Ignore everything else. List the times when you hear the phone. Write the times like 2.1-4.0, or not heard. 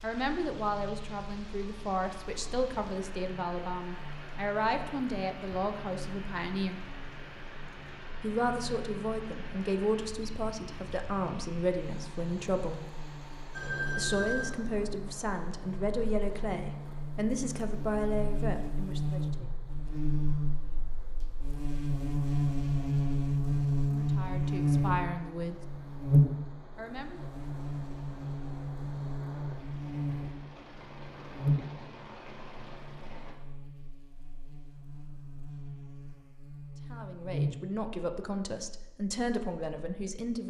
13.5-14.6.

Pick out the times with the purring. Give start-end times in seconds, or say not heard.
not heard.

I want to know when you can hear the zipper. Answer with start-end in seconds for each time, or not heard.
not heard.